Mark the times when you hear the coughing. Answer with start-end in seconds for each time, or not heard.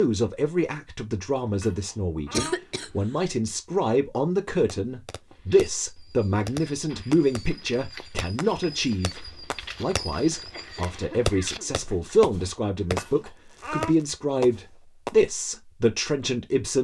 2.3-2.9, 10.3-12.2.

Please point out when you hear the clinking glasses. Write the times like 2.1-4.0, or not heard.
1.4-2.5, 12.8-13.9.